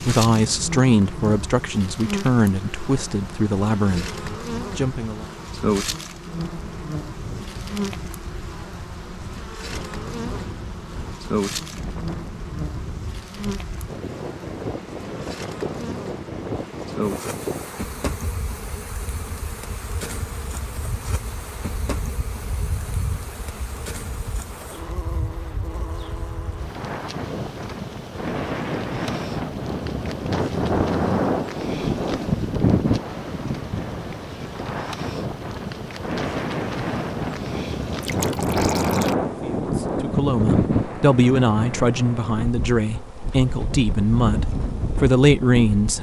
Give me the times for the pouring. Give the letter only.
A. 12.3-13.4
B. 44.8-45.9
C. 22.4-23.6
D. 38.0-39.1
D.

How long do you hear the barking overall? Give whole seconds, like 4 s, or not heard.
not heard.